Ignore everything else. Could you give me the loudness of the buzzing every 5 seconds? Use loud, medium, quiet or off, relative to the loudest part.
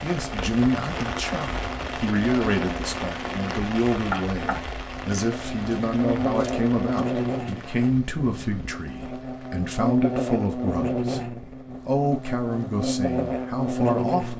medium, loud, loud.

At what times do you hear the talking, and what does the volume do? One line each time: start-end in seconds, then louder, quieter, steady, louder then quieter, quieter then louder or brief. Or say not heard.
0.0-14.3 steady.